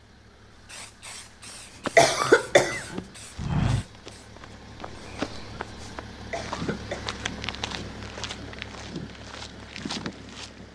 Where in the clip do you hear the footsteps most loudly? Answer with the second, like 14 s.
4 s.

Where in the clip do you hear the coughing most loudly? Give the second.
2 s.